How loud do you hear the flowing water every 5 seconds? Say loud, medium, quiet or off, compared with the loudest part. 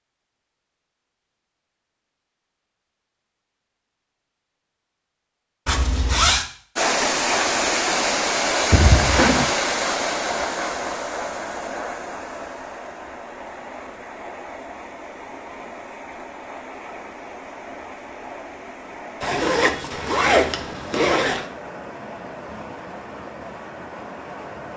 off, loud, medium, quiet, quiet.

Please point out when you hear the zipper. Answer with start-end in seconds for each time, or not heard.
5.7-6.5, 8.7-9.4, 19.2-21.4.